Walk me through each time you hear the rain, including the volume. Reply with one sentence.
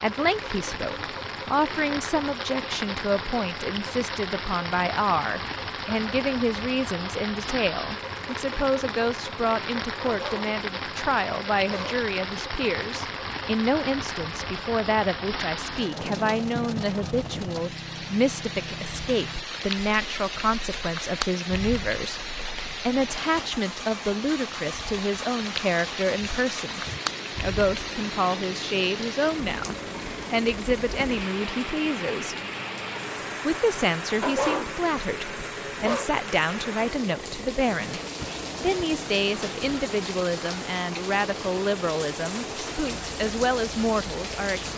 You can hear the rain from 0.0 to 44.7 s, at a steady volume.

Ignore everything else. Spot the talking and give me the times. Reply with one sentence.
The talking can be heard from 0.0 to 26.8 s, from 27.4 to 32.4 s, from 33.5 to 38.0 s and from 38.6 to 44.7 s.